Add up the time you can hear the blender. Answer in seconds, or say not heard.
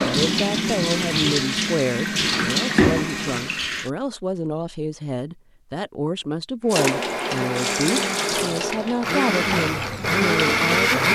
8 s.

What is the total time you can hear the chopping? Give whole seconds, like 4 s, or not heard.
not heard.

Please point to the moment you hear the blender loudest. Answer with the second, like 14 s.
11 s.